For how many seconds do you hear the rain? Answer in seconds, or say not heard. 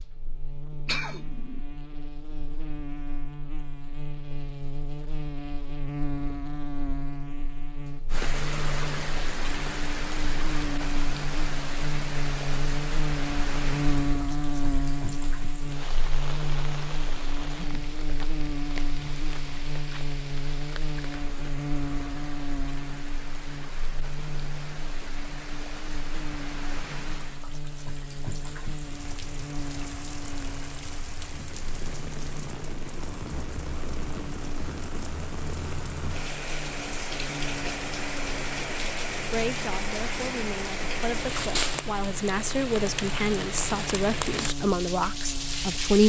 38 s.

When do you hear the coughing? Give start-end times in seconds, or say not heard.
0.8-1.6.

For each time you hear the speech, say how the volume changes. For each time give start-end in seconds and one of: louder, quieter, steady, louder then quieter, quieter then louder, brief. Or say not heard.
39.3-46.0 louder.